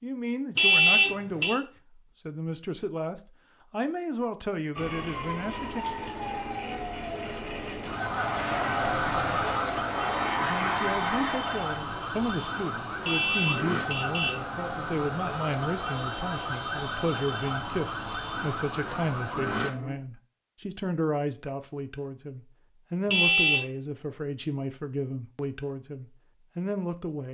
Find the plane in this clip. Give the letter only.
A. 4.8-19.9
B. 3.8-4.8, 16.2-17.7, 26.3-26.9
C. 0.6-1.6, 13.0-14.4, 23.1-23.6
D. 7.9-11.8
D.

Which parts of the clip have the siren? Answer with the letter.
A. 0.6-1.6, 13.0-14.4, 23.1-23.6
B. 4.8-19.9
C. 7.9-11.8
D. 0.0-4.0
B.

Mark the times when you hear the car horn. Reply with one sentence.
You can hear the car horn from 0.6 to 1.6 s, from 13.0 to 14.4 s and from 23.1 to 23.6 s.